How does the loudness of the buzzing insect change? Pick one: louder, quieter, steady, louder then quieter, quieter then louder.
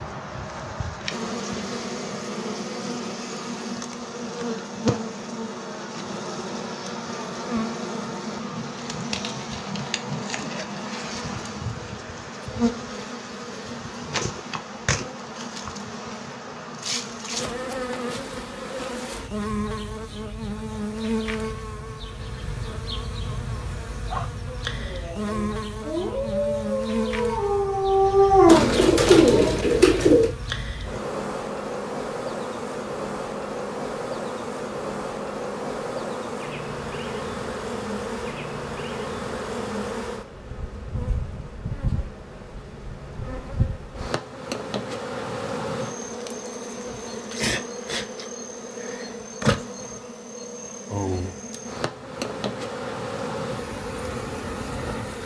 steady.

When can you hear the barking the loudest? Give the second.
28 s.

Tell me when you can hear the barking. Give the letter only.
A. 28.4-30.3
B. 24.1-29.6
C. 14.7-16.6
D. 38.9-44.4
B.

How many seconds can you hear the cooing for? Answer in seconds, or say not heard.
2 s.